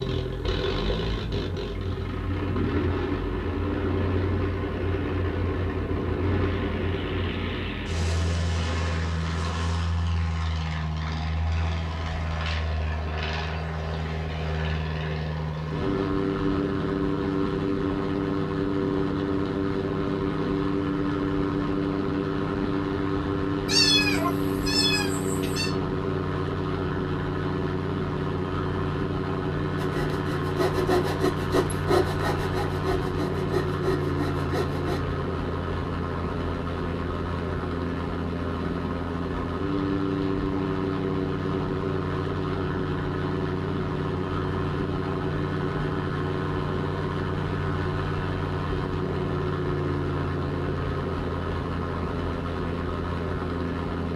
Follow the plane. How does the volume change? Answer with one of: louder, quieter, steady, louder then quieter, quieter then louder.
steady.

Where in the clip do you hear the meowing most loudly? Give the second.
24 s.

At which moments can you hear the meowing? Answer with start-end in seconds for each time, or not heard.
23.6-25.7.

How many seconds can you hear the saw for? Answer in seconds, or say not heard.
5 s.